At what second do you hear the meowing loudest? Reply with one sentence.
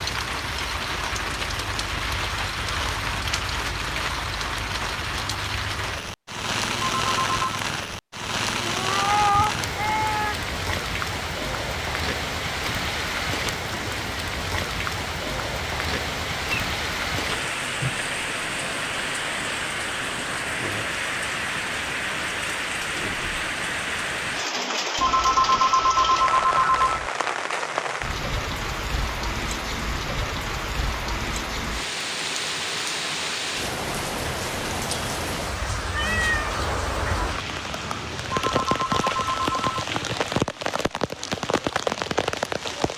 The volume of the meowing peaks at 9 seconds.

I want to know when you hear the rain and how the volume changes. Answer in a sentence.
You can hear the rain from 0.0 to 42.9 s, at a steady volume.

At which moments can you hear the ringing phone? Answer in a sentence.
You can hear the ringing phone from 7.0 to 7.4 s, from 24.9 to 27.1 s and from 38.4 to 39.9 s.